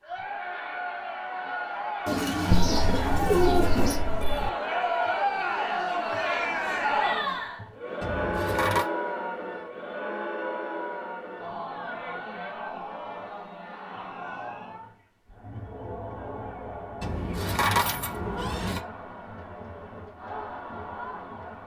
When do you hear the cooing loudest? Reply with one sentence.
The volume of the cooing peaks at 3 seconds.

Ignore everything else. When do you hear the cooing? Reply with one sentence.
The cooing can be heard from 2.0 to 4.0 s.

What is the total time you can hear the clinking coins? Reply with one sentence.
The clinking coins can be heard for 5 seconds in total.